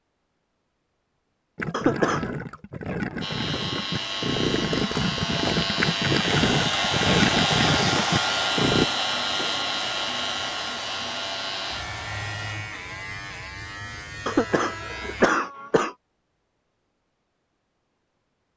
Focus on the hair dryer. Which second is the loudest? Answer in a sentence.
The loudest moment of the hair dryer is at 8 seconds.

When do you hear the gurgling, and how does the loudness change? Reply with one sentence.
You can hear the gurgling from 1.6 to 8.9 s, getting louder.